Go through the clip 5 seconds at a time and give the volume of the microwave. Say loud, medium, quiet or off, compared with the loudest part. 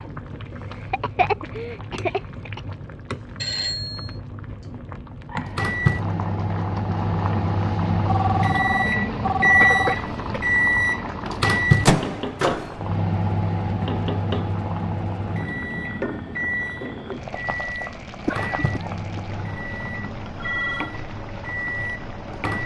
off, loud, loud, medium, medium.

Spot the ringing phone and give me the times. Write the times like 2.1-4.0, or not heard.
3.4-4.2, 8.1-10.0, 20.2-20.9.